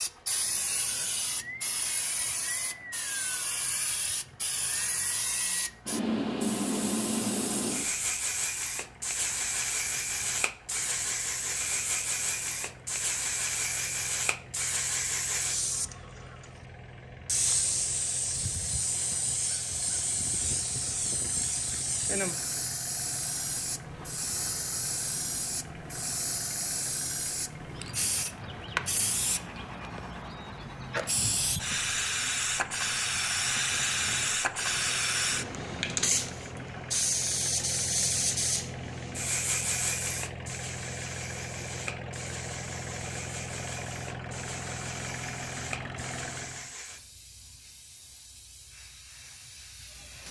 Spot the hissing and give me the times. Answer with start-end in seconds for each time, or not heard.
0.0-50.2.